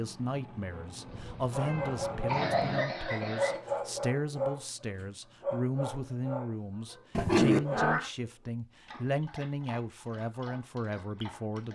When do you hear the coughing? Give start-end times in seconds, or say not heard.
2.2-3.6.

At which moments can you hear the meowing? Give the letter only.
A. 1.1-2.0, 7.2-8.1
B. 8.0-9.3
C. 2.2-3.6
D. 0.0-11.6
A.